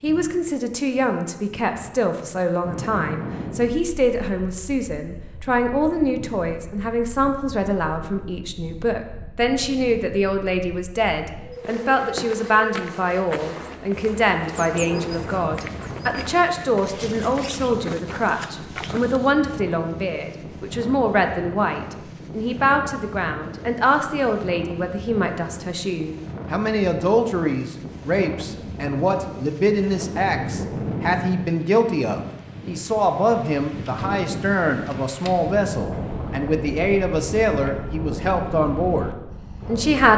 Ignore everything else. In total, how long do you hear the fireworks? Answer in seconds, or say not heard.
not heard.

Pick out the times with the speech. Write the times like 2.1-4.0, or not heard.
0.0-40.1.